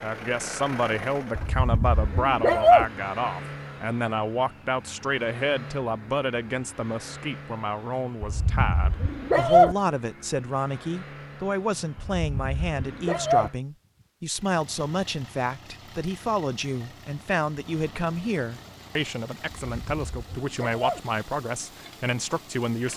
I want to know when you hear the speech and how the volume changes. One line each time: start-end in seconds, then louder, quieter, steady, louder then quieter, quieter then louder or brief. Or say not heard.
0.0-22.9 steady.